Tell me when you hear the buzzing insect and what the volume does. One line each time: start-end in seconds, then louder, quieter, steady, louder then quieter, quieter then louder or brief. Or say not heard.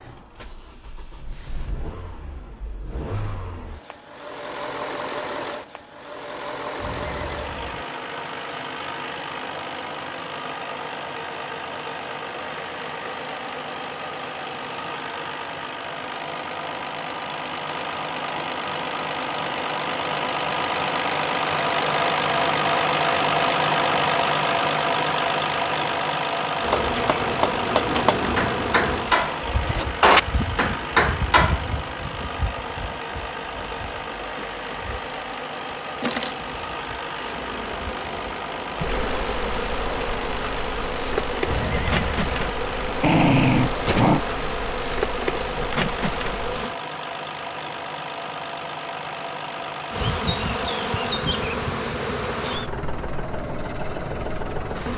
26.6-46.8 quieter then louder
49.9-54.9 steady.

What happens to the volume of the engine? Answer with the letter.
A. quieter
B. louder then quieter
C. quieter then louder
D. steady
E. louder
B.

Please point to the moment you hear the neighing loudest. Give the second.
42 s.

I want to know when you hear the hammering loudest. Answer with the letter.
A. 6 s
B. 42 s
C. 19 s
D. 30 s
D.